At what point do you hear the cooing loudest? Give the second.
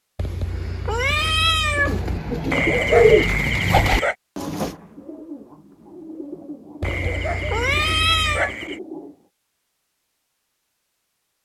3 s.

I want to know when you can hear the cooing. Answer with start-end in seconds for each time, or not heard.
1.8-9.2.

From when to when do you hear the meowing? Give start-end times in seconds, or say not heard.
0.1-2.2, 6.8-8.6.